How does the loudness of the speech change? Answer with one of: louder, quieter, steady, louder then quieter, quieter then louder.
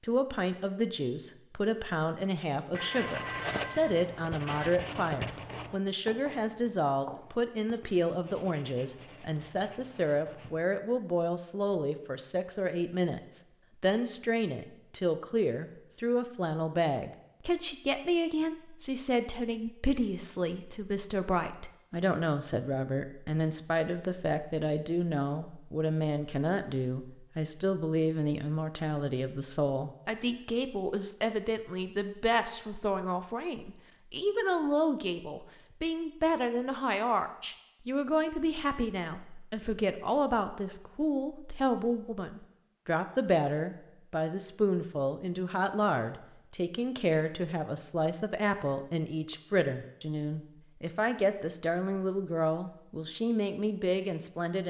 steady.